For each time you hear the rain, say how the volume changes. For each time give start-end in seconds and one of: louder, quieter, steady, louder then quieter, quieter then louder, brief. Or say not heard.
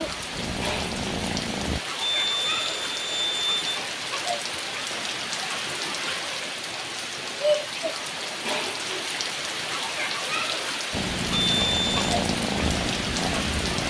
0.0-13.8 steady.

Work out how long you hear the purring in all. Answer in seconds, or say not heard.
5 s.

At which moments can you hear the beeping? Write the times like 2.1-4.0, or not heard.
2.0-3.8, 11.3-12.2.